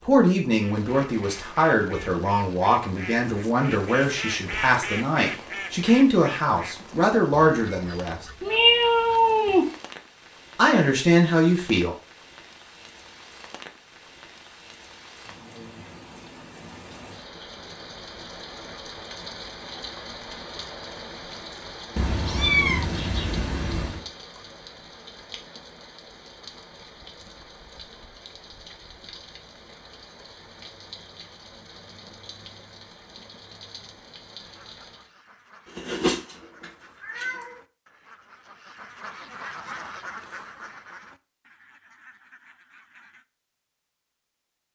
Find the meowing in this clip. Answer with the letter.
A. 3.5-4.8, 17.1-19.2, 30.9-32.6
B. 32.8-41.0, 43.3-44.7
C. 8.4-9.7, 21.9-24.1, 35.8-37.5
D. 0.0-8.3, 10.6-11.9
C.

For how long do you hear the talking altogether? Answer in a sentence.
You can hear the talking for 10 seconds altogether.